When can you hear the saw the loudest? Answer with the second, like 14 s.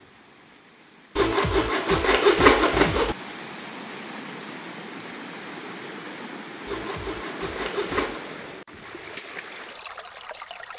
2 s.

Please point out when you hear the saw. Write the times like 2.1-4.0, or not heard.
1.1-3.1, 6.7-8.2.